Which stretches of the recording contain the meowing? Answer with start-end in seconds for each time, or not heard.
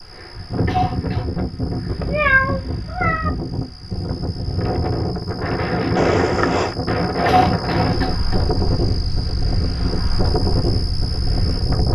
1.9-3.3, 6.0-6.8.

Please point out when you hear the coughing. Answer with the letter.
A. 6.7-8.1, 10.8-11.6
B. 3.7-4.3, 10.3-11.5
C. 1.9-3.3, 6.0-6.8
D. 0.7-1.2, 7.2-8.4
D.